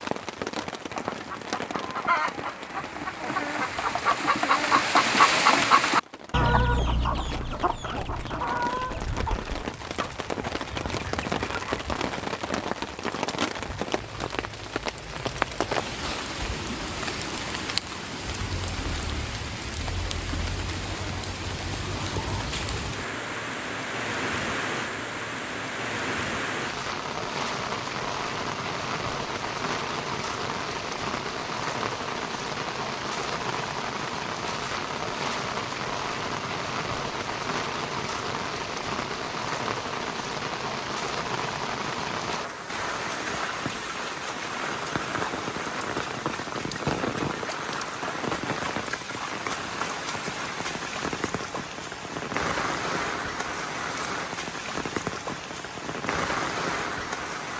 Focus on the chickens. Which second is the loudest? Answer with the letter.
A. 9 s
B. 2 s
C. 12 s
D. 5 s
D.